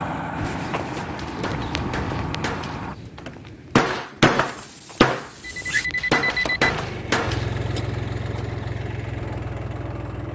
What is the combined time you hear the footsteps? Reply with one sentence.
The footsteps can be heard for 6 seconds in total.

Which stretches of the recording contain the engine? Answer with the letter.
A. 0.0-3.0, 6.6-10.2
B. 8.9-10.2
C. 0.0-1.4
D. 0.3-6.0
A.